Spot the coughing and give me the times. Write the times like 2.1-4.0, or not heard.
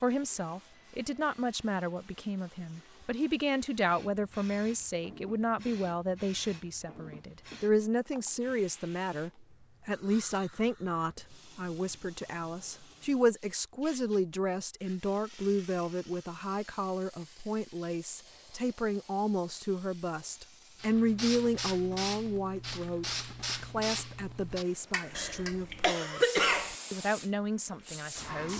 25.1-26.8.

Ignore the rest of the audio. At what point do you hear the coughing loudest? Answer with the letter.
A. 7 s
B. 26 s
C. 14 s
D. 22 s
B.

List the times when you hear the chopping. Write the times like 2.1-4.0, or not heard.
not heard.